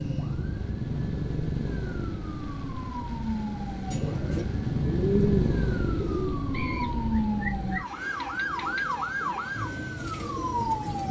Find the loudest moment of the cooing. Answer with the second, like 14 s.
5 s.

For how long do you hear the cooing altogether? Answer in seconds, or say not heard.
7 s.